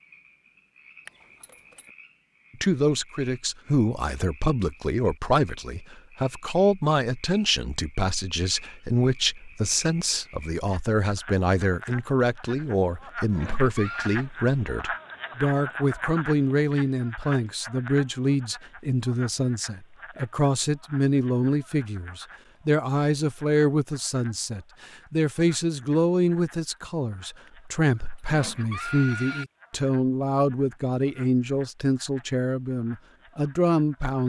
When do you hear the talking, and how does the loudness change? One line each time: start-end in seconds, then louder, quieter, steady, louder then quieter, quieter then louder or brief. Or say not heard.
2.5-34.2 steady.